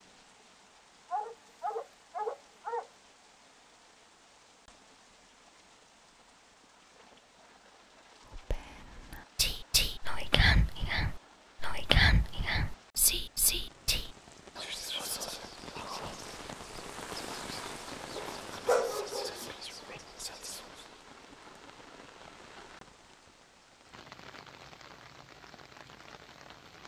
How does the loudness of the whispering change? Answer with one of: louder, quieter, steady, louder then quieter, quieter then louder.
quieter.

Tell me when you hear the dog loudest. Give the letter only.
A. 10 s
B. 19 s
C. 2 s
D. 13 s
B.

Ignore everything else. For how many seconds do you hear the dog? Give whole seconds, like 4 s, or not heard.
3 s.